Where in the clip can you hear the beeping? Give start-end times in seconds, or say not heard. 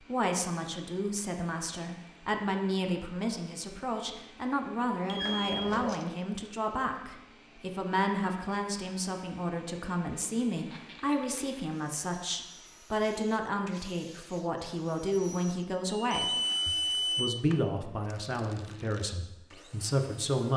5.0-5.8, 15.9-17.4.